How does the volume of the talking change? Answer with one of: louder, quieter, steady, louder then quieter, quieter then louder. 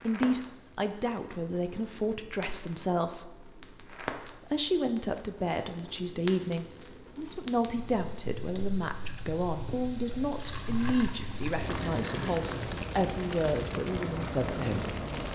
steady.